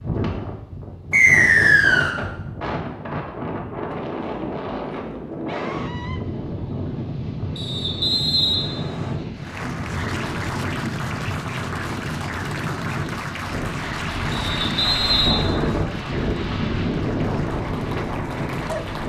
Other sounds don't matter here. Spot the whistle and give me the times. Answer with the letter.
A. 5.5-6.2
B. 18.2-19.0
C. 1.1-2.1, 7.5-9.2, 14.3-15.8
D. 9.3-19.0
C.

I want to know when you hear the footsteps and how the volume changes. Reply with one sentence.
The footsteps can't be heard in this clip.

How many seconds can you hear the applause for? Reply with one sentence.
You can hear the applause for 10 seconds altogether.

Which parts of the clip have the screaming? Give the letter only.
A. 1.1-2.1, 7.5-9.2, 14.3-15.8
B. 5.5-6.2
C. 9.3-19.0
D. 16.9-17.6
B.